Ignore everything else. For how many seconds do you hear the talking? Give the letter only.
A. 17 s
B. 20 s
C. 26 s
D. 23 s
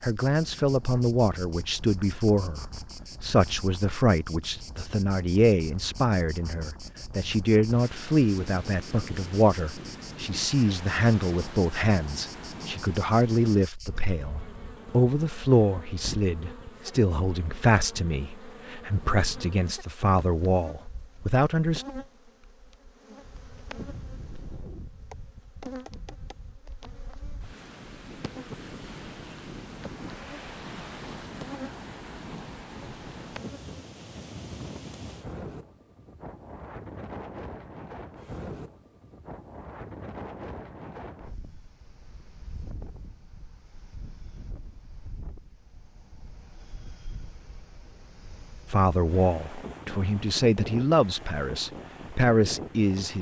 C.